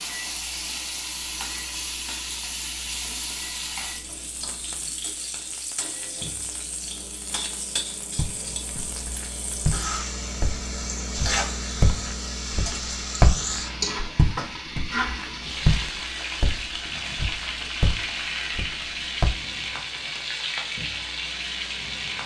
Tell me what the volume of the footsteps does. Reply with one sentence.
The volume of the footsteps goes up, then down.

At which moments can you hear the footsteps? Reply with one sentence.
The footsteps can be heard from 8.2 to 19.3 s.